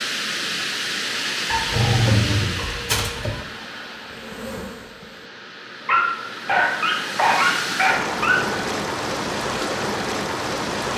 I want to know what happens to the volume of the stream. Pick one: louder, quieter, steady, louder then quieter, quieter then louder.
quieter then louder.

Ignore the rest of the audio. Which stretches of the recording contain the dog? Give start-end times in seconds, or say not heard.
1.4-3.4, 5.8-8.6.